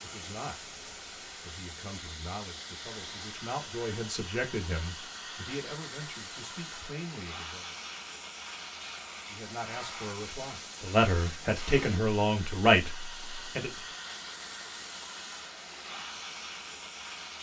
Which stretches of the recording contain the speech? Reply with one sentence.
You can hear the speech from 0.0 to 0.7 s, from 1.4 to 7.8 s and from 9.3 to 13.7 s.